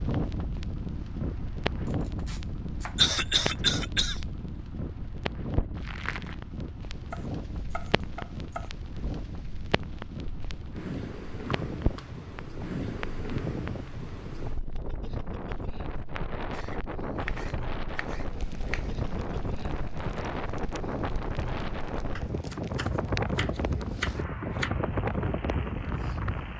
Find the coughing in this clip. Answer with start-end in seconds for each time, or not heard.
3.0-4.2.